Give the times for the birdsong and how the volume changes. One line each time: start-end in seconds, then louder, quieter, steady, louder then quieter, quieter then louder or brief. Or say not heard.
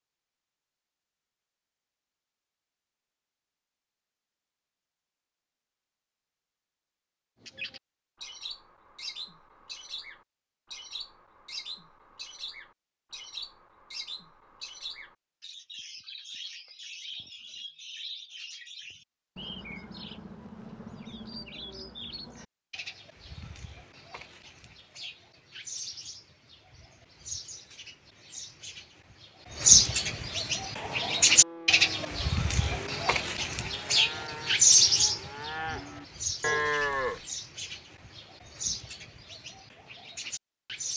7.4-40.9 louder.